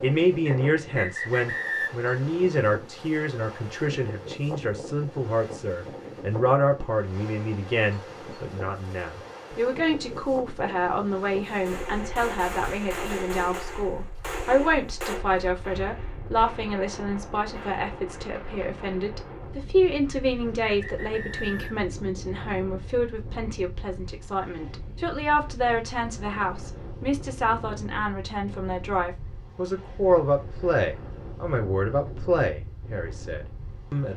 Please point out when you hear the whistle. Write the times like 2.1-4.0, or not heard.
0.5-1.9, 20.1-21.8.